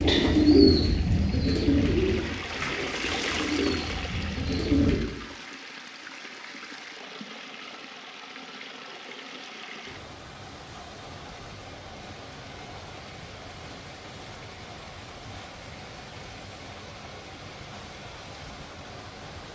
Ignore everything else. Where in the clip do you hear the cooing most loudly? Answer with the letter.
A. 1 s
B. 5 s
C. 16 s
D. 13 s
A.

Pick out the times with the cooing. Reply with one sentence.
The cooing can be heard from 0.0 to 5.0 s.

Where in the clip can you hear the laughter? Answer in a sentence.
The laughter can't be heard in this clip.